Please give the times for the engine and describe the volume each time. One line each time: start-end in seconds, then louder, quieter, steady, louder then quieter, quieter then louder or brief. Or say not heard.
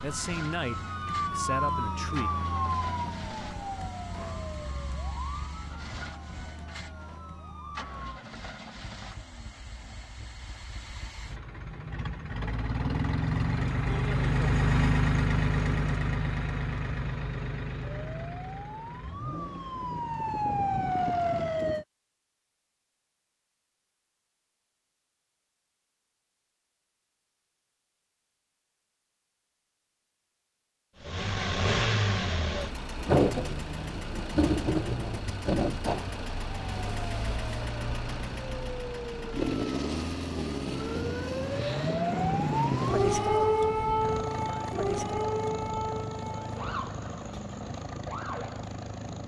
0.0-21.8 louder then quieter
31.0-49.2 quieter.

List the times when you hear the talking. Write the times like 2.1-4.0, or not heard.
0.0-2.3.